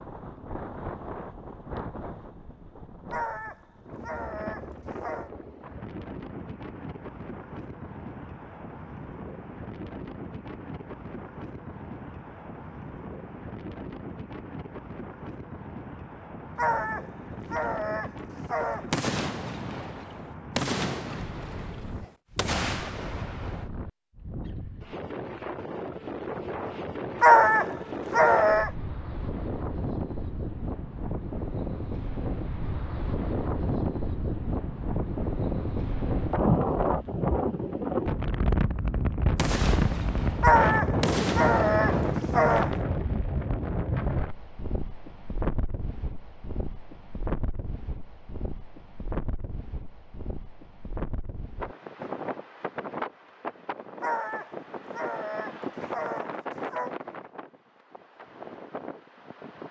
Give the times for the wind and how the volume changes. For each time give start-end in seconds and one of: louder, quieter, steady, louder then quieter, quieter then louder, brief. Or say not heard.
0.0-59.6 louder then quieter.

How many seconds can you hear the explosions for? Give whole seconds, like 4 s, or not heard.
8 s.